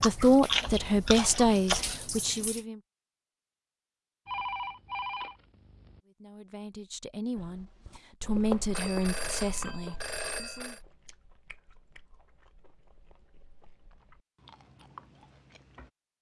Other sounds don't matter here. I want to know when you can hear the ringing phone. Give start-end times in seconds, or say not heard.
4.2-6.0, 8.7-10.8.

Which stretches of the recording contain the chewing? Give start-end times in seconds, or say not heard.
0.0-1.9, 7.3-15.9.